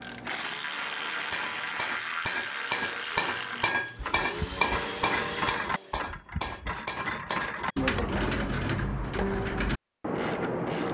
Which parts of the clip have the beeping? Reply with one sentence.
The beeping can't be heard in this clip.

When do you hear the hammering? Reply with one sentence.
The hammering can be heard from 1.3 to 9.3 s.